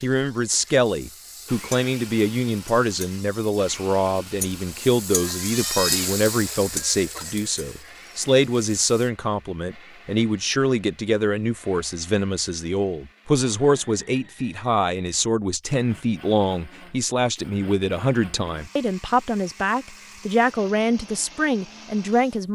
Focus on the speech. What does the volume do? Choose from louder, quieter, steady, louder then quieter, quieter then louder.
steady.